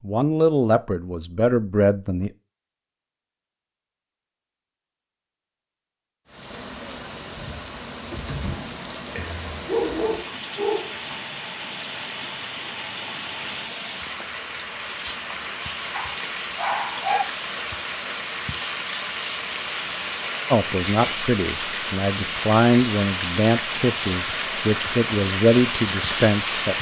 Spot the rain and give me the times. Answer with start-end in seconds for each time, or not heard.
6.2-26.7.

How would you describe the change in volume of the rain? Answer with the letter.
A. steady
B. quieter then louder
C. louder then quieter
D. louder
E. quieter
D.